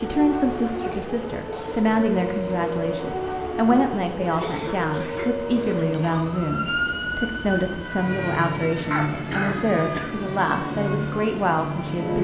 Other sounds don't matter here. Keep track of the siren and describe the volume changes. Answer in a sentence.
The volume of the siren stays about the same.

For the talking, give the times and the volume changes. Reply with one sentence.
The talking can be heard from 0.0 to 12.2 s, at a steady volume.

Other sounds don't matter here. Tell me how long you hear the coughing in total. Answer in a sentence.
You can hear the coughing for 4 seconds altogether.